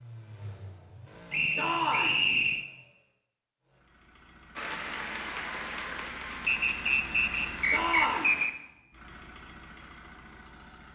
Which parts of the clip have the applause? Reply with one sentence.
The applause can be heard from 4.5 to 8.5 s.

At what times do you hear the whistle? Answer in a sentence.
You can hear the whistle from 1.3 to 2.6 s and from 6.5 to 8.5 s.